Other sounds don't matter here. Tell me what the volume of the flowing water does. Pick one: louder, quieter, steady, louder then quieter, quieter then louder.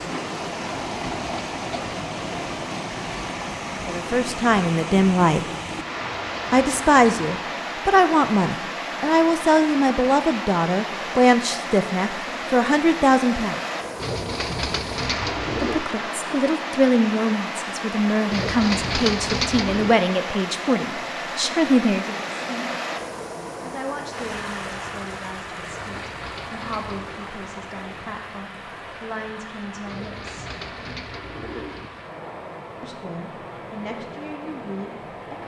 quieter.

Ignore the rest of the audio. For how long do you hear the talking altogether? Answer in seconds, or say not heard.
25 s.